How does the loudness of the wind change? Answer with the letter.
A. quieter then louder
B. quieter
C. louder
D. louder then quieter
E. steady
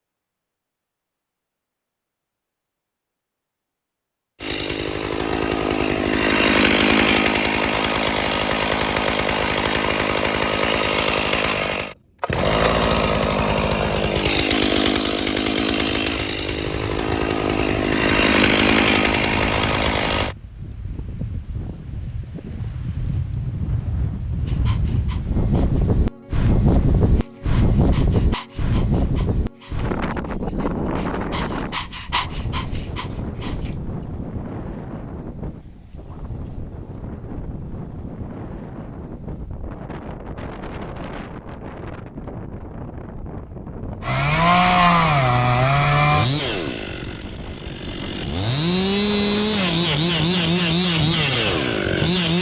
D.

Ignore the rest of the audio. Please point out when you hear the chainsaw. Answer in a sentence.
The chainsaw can be heard from 4.4 to 20.4 s and from 44.0 to 52.3 s.